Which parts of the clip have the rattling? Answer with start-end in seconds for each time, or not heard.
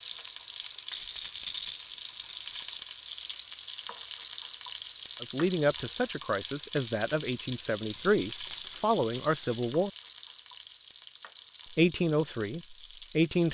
0.9-2.8, 7.9-9.8.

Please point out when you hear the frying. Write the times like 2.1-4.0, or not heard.
0.0-13.4.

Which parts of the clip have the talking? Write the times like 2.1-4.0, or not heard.
5.2-9.9, 11.7-13.4.